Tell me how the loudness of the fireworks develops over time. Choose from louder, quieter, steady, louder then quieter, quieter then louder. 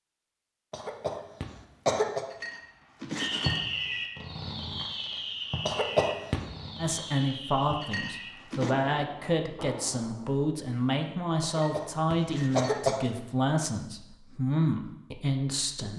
quieter.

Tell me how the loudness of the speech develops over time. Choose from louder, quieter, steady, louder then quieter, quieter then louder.
steady.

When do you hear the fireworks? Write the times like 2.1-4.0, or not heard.
3.1-10.4.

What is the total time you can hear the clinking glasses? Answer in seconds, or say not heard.
4 s.